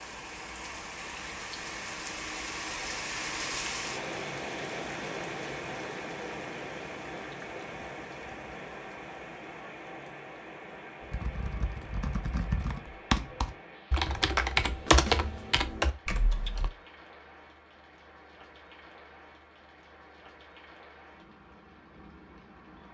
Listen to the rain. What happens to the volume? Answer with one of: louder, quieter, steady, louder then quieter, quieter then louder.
quieter.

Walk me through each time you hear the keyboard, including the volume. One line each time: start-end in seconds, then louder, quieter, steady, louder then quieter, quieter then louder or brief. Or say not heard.
11.0-16.7 louder then quieter.